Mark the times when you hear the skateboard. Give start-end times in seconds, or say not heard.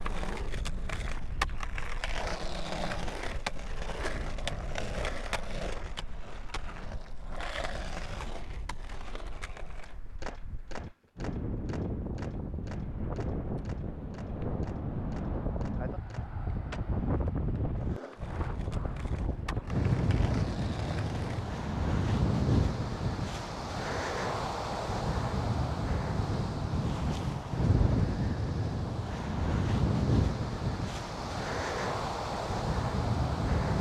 0.0-21.4.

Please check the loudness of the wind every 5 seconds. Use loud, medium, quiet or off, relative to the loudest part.
quiet, quiet, medium, loud, loud, loud, loud.